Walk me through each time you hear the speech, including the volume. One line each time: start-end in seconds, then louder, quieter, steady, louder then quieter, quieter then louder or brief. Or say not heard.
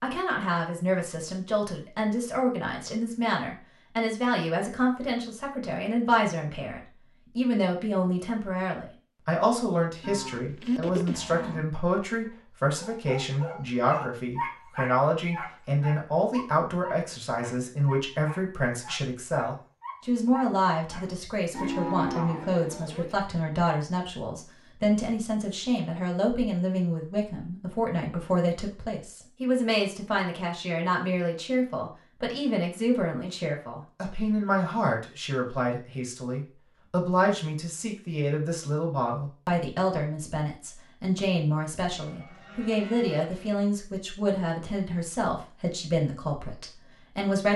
0.0-47.5 steady.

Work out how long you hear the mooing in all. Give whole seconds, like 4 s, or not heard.
5 s.